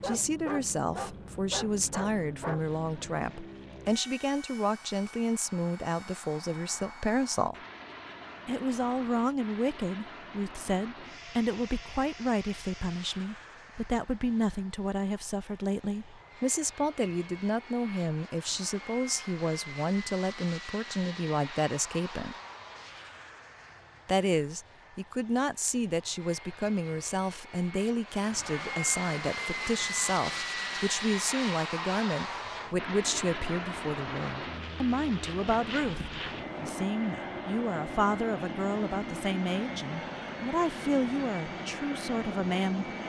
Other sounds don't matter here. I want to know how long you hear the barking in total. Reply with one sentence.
The barking can be heard for 3 seconds in total.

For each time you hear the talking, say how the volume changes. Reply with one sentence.
You can hear the talking from 0.0 to 7.5 s, at a steady volume; from 8.4 to 22.4 s, at a steady volume; and from 24.1 to 42.9 s, at a steady volume.